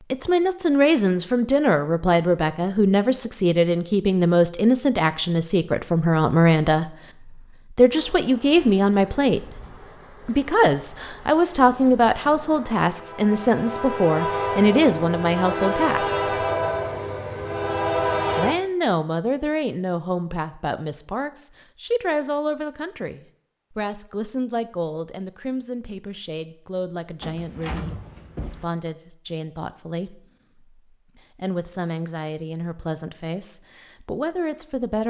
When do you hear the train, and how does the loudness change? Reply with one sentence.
The train can be heard from 8.0 to 18.6 s, getting louder.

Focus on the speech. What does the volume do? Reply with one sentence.
The loudness of the speech goes down.